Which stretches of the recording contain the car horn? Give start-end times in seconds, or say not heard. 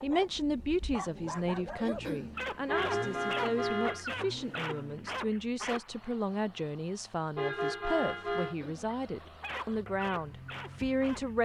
2.6-4.0, 7.3-8.6.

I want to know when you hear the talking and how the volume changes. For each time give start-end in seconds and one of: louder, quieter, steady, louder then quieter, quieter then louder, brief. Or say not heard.
0.0-11.4 steady.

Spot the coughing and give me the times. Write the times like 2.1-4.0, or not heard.
1.8-2.4, 8.4-8.9.